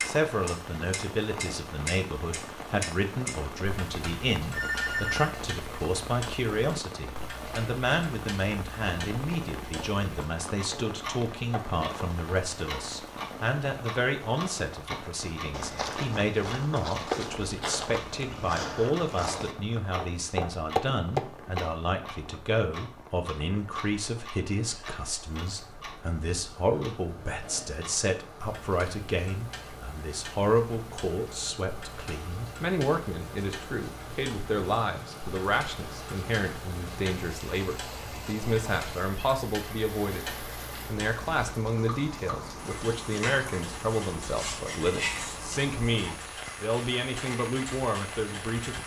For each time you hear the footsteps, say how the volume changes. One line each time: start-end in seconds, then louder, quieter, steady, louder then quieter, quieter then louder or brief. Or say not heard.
14.9-21.6 louder.